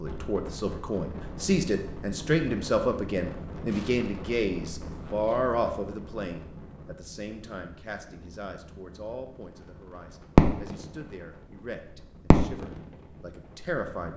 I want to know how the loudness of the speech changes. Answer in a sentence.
The volume of the speech goes down.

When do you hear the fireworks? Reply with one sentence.
The fireworks can be heard from 10.3 to 10.8 s and from 12.3 to 12.8 s.